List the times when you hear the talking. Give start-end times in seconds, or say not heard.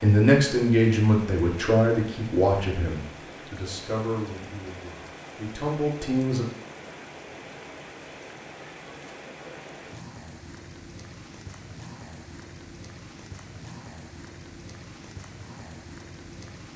0.0-6.5.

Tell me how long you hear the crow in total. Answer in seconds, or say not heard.
not heard.